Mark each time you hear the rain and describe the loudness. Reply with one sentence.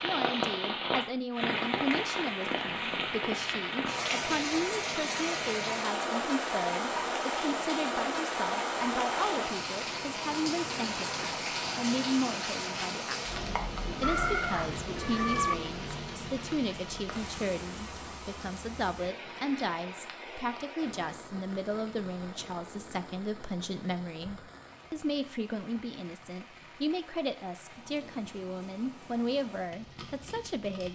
You can hear the rain from 0.0 to 30.9 s, getting quieter.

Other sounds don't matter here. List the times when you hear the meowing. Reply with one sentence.
The meowing can be heard from 14.0 to 15.6 s.